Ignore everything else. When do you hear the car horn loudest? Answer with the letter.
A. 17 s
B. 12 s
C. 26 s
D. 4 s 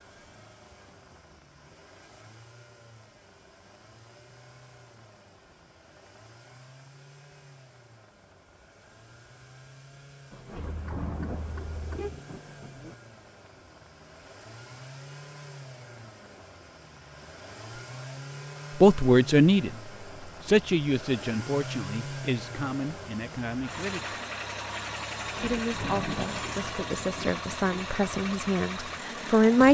B.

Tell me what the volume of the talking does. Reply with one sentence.
The volume of the talking goes down, then up.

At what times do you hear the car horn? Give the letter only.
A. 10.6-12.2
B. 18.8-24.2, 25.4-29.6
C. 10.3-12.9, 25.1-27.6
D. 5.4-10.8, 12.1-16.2
A.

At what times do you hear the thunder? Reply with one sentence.
The thunder can be heard from 10.3 to 12.9 s and from 25.1 to 27.6 s.